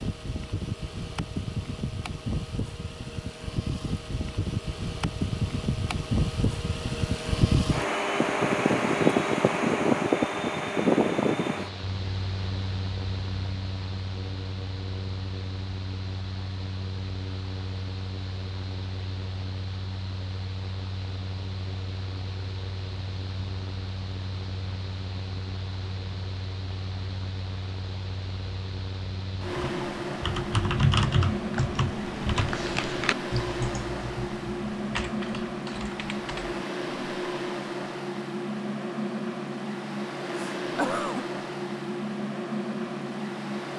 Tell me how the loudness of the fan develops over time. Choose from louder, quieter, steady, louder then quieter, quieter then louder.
quieter then louder.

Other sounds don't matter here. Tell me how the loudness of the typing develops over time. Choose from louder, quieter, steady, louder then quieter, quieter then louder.
quieter.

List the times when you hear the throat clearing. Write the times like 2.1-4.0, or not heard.
40.4-41.2.